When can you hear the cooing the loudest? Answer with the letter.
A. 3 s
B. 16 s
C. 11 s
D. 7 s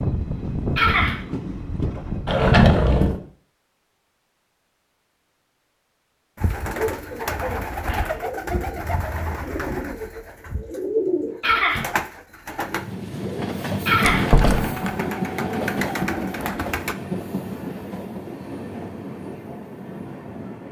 C.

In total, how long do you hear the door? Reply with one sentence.
You can hear the door for 2 seconds altogether.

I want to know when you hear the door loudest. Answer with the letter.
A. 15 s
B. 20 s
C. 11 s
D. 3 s
D.